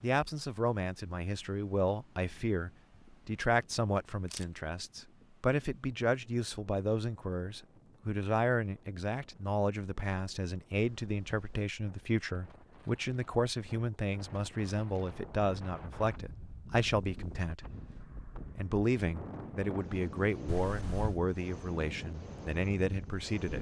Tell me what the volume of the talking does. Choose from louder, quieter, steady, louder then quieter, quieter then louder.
steady.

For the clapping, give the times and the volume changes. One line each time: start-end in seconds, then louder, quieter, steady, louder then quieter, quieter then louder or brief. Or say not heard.
not heard.